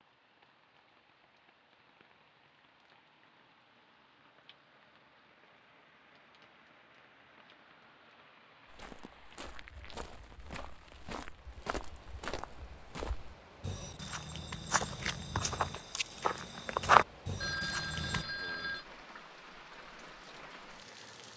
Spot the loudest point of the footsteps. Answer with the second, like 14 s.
17 s.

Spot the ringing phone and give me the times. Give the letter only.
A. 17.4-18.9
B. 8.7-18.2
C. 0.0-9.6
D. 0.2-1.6
A.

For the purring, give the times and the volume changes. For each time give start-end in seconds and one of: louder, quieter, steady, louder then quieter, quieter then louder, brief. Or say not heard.
not heard.